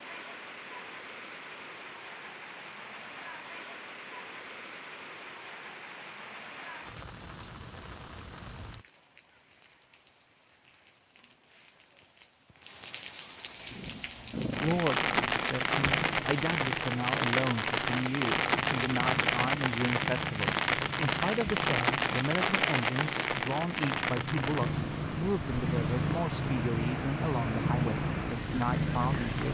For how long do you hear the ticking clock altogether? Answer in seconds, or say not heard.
not heard.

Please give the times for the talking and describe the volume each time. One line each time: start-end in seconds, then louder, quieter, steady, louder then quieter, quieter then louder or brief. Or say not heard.
14.6-29.4 steady.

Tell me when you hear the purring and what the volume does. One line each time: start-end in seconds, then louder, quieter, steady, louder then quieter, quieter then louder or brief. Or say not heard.
13.6-29.4 louder.